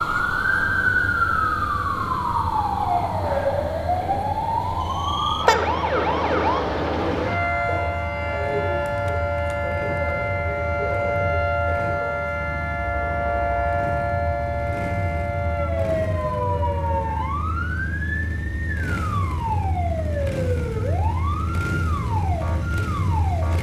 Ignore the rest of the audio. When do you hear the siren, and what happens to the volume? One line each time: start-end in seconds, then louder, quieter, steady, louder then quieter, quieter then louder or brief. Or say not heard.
0.0-23.5 quieter.